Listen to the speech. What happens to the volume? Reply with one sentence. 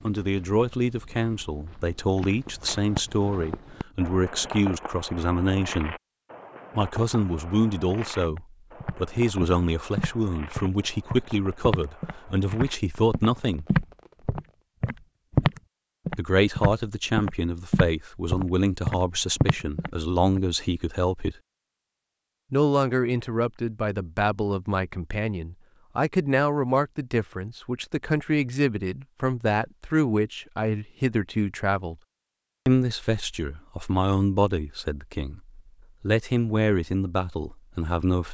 The volume of the speech stays about the same.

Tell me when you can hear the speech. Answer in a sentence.
You can hear the speech from 0.1 to 6.0 s, from 6.8 to 13.7 s, from 16.1 to 21.4 s, from 22.5 to 31.9 s and from 32.6 to 38.2 s.